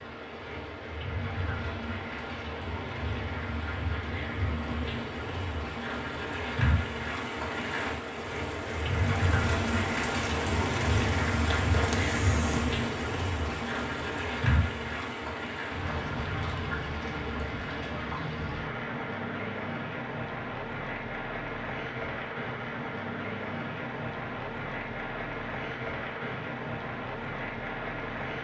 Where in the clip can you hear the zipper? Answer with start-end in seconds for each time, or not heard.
11.4-12.8.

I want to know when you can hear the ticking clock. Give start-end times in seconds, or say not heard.
not heard.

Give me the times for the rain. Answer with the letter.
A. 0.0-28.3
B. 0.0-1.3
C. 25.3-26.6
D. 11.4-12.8
A.